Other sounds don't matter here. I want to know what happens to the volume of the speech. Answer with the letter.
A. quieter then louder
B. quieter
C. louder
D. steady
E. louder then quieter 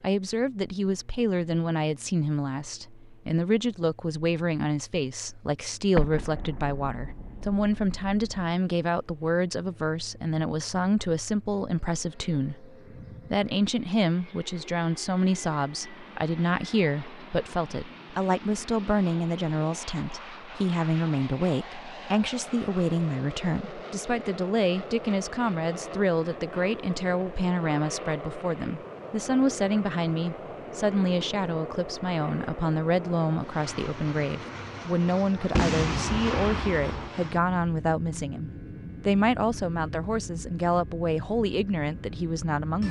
D.